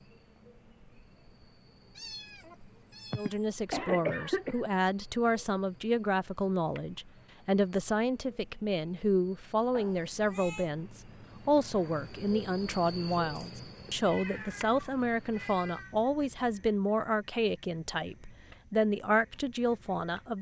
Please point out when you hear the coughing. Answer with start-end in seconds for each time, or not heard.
3.1-4.6.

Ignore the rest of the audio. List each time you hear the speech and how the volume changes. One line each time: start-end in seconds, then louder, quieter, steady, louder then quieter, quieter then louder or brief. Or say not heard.
3.1-20.3 steady.